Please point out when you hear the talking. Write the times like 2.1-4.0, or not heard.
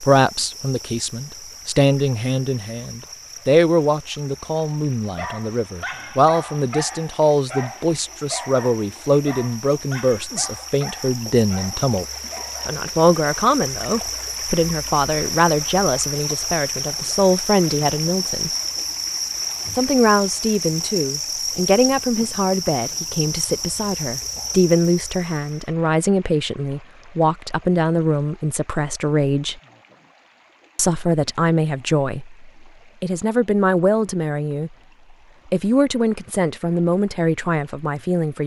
0.0-12.1, 12.7-18.5, 19.8-29.6, 30.8-34.7, 35.5-38.4.